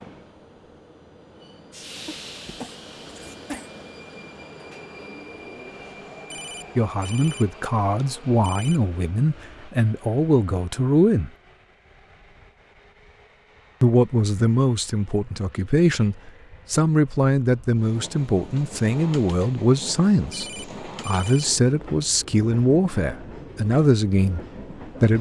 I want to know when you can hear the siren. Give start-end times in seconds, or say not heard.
not heard.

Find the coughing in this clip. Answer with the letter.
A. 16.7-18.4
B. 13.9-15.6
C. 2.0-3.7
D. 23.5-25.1
C.